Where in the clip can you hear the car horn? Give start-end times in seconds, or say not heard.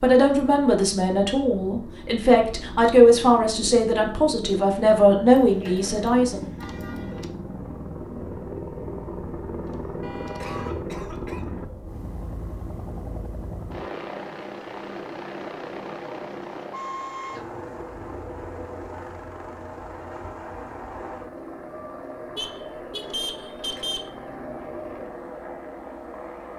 5.3-7.3, 10.0-10.8, 22.4-24.1.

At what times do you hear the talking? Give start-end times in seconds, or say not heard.
0.0-6.5.